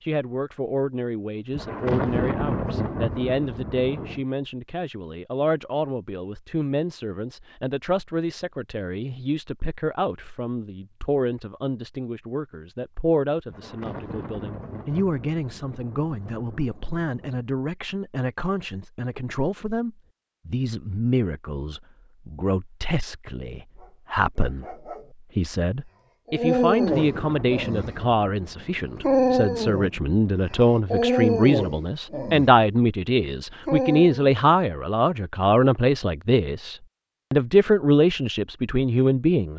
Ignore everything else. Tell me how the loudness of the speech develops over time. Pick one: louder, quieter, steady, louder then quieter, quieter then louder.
louder.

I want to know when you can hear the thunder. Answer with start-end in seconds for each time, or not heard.
1.5-4.2, 13.4-17.4, 26.6-30.8.